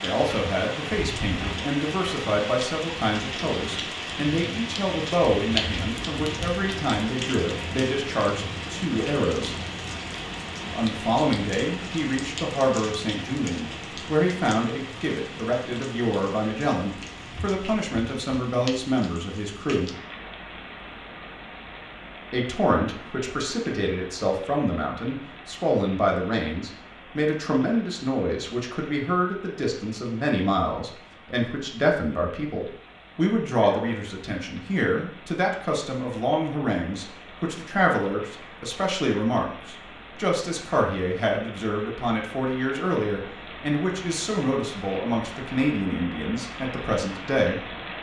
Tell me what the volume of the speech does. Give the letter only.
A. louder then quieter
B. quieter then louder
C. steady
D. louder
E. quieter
C.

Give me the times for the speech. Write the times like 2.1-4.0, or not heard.
0.0-9.6, 10.7-19.9, 22.3-47.6.